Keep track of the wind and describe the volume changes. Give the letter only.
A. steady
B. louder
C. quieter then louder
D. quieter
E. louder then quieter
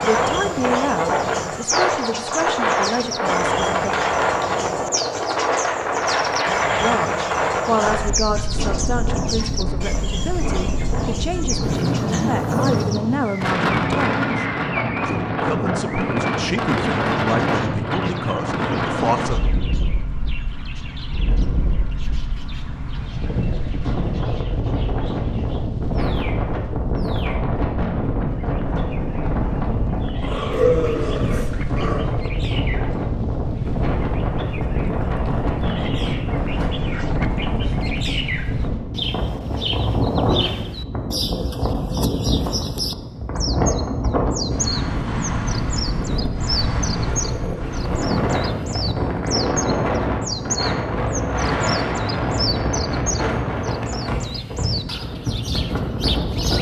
A.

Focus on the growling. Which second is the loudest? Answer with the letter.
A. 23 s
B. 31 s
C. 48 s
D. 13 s
B.